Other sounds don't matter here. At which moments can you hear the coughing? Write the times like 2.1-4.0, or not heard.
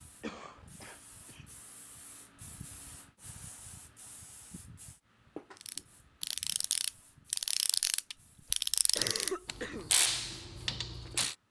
0.2-1.4, 8.5-9.9.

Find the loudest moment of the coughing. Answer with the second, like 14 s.
9 s.